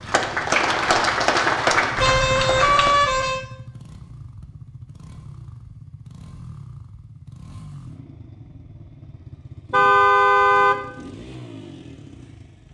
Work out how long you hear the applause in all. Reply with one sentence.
The applause can be heard for 3 seconds in total.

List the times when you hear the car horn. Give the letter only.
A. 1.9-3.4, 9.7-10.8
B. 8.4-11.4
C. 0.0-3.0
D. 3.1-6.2
A.